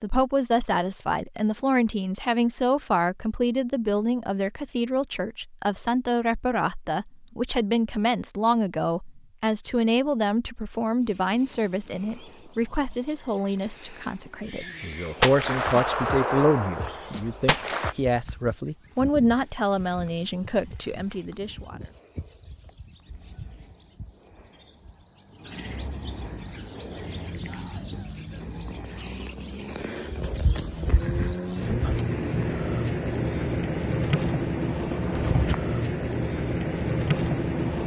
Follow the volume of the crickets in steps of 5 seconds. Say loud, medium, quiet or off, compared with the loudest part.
off, off, quiet, quiet, quiet, loud, loud, loud.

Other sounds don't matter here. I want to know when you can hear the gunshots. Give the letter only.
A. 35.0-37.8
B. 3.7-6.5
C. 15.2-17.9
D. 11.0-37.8
C.